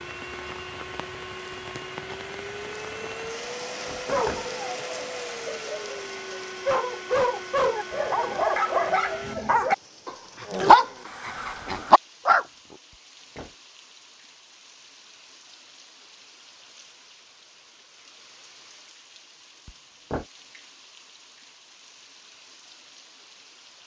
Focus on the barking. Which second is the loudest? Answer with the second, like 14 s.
11 s.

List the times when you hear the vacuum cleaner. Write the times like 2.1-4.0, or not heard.
0.0-9.3.